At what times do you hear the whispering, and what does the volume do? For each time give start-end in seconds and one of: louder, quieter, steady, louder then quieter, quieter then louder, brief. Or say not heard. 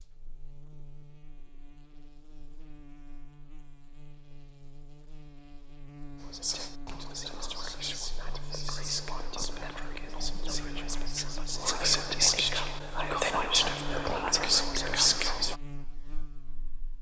6.2-15.6 louder.